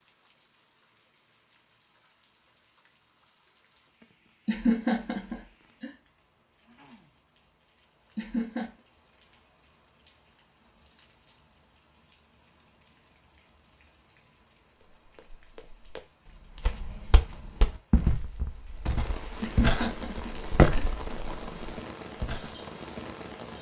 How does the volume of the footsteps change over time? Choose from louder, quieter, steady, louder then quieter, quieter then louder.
louder then quieter.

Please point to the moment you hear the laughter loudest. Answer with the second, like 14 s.
5 s.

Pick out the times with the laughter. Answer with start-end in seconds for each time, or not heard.
4.5-5.9, 8.2-8.7, 19.4-20.9.